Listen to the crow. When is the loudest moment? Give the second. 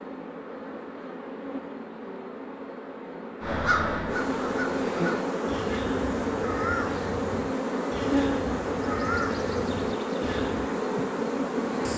4 s.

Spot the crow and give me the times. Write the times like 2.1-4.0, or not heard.
3.4-10.7.